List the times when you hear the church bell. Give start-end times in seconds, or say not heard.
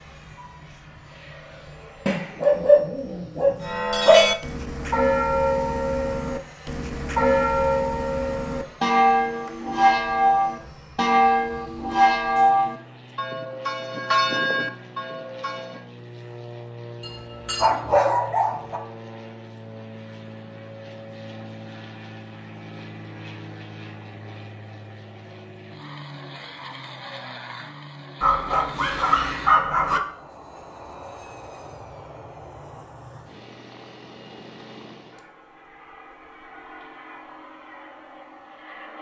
3.6-15.8.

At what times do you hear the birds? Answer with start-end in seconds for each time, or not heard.
not heard.